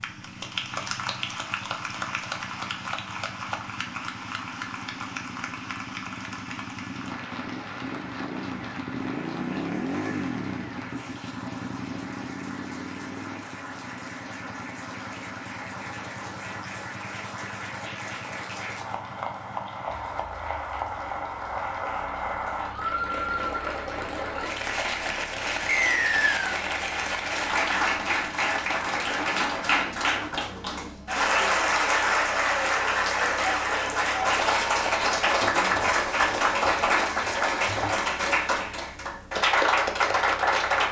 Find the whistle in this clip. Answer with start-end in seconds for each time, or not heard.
25.6-26.6.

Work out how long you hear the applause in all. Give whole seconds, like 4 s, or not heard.
41 s.